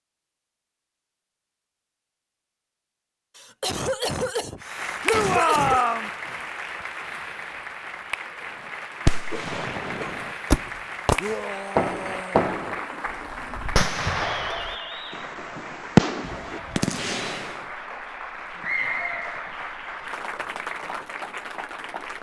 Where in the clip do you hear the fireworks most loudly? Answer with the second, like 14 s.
16 s.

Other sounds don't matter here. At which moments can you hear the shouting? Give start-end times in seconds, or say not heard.
5.0-6.1, 11.2-12.4.